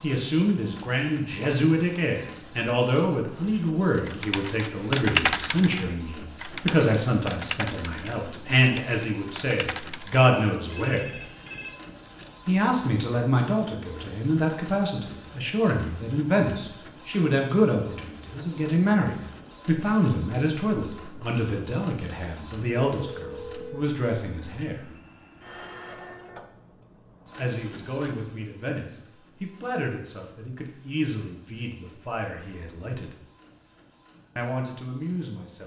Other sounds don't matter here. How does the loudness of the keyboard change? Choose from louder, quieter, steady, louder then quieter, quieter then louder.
quieter.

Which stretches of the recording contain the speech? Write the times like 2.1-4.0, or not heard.
0.0-11.1, 12.4-24.9, 27.4-33.1, 34.4-35.6.